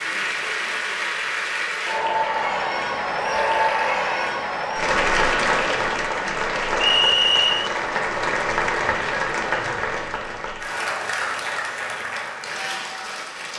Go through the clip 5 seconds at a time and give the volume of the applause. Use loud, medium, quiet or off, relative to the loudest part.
loud, loud, medium.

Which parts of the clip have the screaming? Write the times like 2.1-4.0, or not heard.
3.1-4.3.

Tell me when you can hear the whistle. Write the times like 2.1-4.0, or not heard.
6.8-7.7.